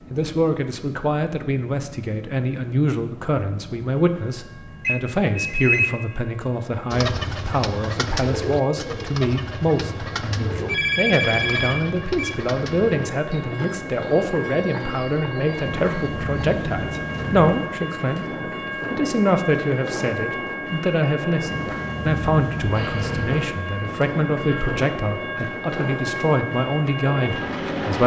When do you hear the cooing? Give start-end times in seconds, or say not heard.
6.9-16.8.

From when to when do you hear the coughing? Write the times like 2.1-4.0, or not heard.
not heard.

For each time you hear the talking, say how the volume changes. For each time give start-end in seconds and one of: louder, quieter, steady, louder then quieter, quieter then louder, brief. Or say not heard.
0.1-28.0 steady.